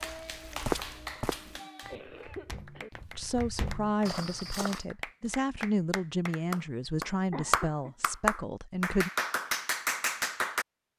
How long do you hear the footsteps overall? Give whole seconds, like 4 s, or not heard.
5 s.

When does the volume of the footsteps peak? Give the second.
1 s.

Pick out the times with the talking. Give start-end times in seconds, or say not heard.
3.1-9.1.